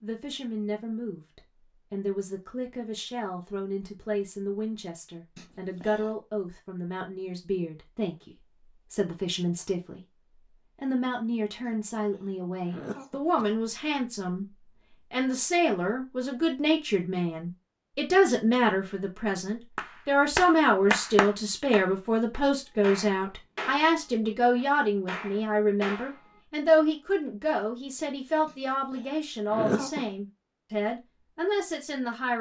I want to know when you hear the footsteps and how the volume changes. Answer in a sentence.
You can't hear the footsteps here.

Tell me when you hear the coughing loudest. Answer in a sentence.
The loudest moment of the coughing is at 30 seconds.